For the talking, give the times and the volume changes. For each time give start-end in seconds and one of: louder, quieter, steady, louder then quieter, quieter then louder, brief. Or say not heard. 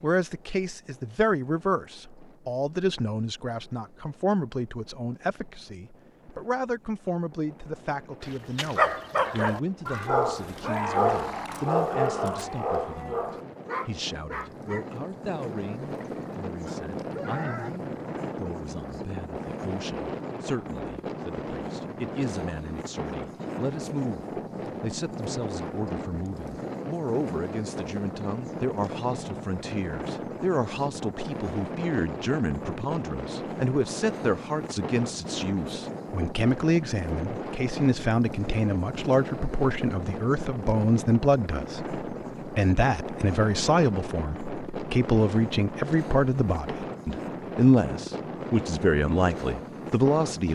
0.0-50.5 quieter then louder.